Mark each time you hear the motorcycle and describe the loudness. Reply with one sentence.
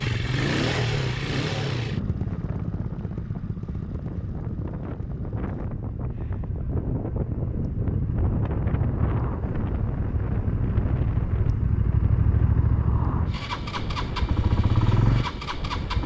You can hear the motorcycle from 0.0 to 16.0 s, getting quieter then louder.